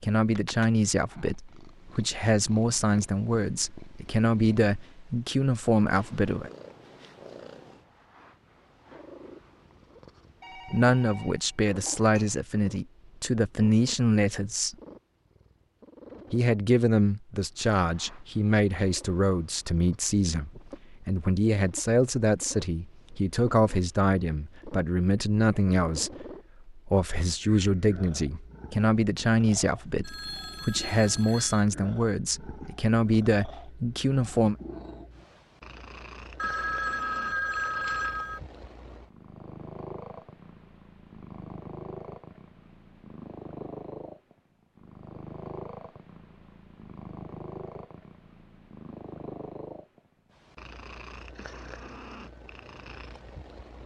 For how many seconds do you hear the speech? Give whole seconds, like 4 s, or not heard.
29 s.